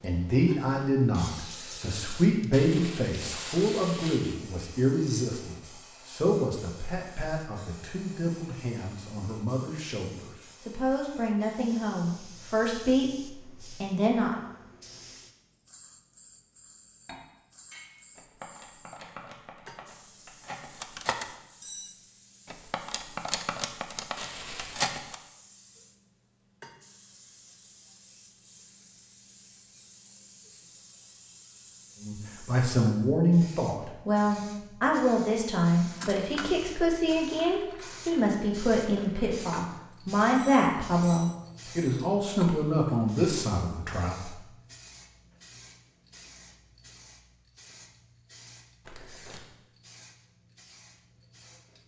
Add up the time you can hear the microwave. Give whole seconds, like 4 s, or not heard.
not heard.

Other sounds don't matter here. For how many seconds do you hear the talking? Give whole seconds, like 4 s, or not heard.
27 s.